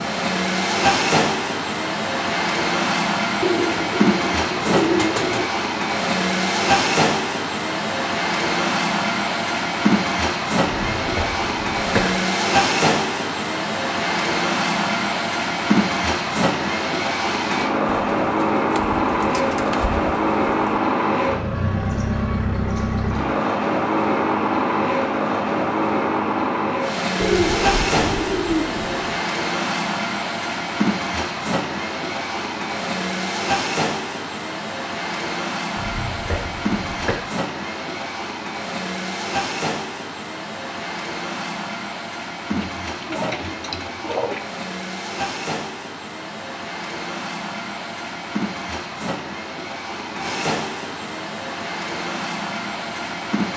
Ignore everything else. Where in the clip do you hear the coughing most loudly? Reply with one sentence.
The volume of the coughing peaks at 12 seconds.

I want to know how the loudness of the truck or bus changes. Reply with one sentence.
The volume of the truck or bus goes down.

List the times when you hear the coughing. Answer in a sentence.
You can hear the coughing from 10.8 to 12.2 s and from 35.8 to 37.2 s.